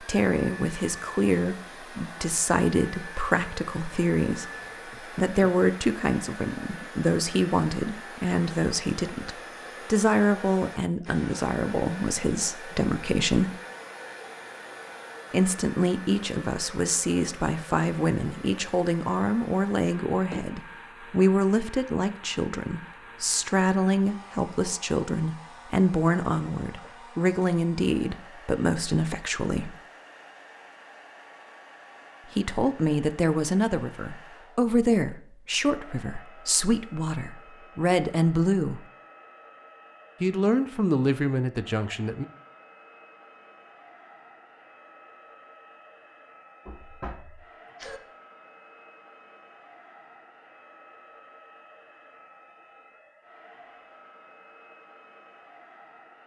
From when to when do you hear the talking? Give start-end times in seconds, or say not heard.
0.0-13.6, 15.3-29.8, 32.4-38.8, 40.2-42.2.